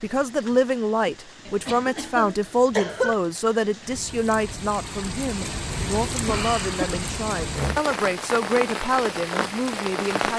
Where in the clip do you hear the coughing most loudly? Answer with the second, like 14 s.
3 s.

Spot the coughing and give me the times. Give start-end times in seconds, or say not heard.
1.4-3.1, 6.2-7.0.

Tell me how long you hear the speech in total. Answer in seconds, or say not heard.
10 s.